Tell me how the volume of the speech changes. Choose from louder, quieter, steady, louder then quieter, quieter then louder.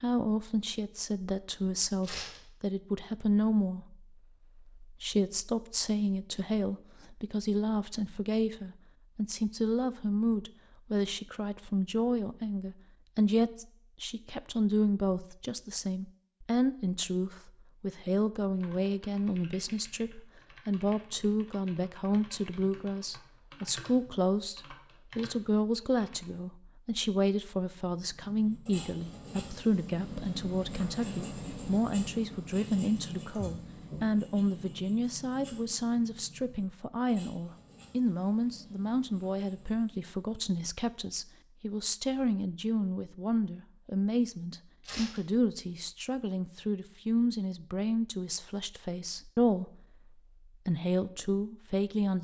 steady.